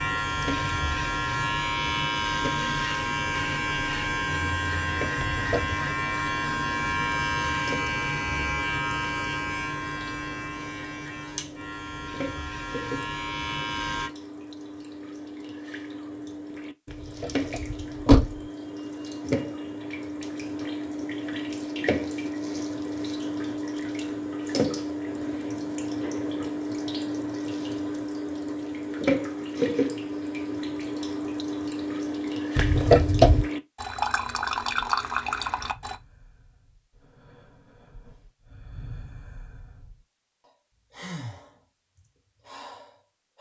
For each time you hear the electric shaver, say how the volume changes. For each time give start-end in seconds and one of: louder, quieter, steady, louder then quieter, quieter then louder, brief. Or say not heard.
0.0-14.1 quieter.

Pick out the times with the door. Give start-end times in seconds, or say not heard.
5.2-5.8, 16.9-18.4, 32.5-33.5.